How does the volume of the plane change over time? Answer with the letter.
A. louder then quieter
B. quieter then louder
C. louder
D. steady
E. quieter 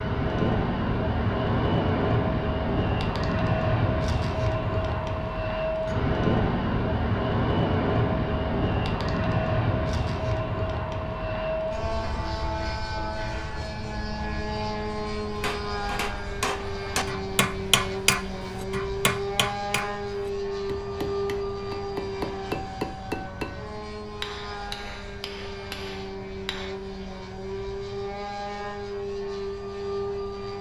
E.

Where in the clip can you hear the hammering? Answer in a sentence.
The hammering can be heard from 15.2 to 26.8 s.